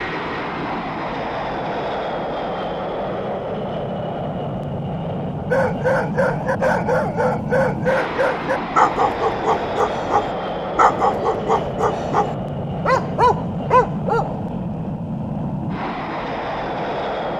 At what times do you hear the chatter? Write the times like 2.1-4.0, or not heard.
not heard.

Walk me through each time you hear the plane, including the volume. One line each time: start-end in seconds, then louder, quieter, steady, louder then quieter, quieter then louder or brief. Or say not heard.
0.0-17.3 steady.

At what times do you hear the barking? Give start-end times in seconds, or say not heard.
5.5-14.3.